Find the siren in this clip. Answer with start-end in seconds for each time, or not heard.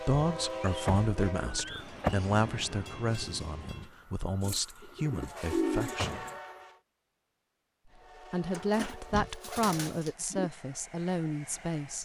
not heard.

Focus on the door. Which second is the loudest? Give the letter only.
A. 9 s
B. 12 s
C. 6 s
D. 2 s
D.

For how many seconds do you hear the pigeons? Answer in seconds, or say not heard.
6 s.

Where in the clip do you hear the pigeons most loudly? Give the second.
6 s.